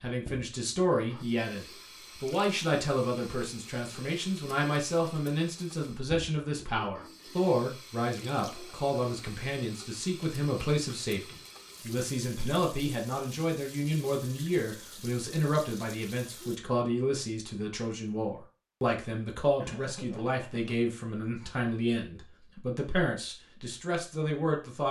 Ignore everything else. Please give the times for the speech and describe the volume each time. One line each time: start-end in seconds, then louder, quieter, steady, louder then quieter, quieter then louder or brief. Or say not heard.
0.0-24.8 steady.